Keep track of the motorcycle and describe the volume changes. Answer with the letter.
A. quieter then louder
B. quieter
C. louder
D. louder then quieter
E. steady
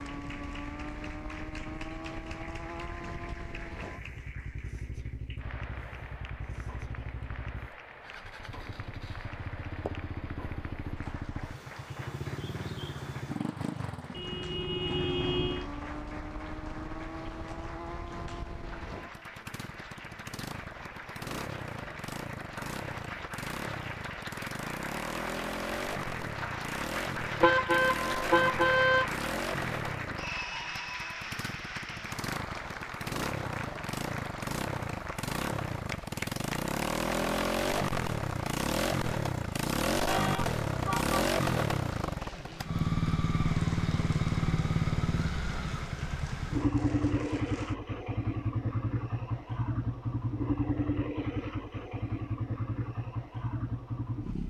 C.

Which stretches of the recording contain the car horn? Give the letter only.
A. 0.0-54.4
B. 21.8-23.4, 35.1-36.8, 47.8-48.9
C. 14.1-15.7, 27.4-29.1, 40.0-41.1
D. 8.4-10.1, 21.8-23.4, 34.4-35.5
C.